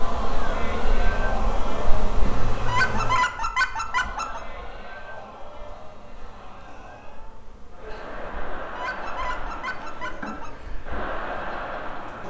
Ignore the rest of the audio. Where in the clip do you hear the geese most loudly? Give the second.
3 s.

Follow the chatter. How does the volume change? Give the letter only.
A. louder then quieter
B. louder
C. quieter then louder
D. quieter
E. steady
C.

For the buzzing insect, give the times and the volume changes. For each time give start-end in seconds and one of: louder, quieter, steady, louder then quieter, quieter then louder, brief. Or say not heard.
0.0-12.2 quieter then louder.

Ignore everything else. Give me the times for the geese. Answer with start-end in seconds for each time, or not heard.
2.6-4.4, 8.7-10.5.